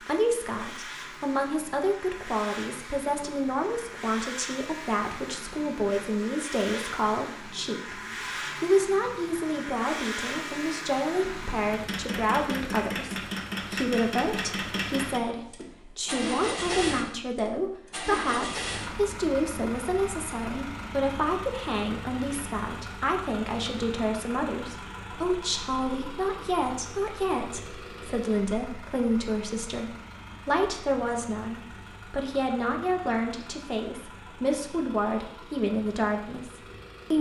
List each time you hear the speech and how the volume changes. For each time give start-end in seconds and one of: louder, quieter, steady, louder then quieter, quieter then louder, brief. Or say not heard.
0.1-37.1 steady.